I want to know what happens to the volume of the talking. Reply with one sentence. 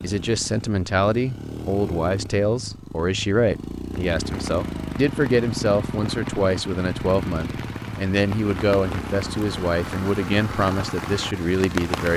The volume of the talking stays about the same.